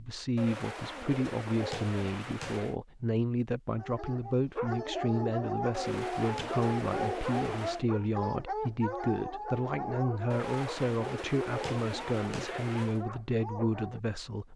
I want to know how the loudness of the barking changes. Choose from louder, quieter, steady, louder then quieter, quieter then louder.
quieter.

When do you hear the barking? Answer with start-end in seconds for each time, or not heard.
3.8-14.0.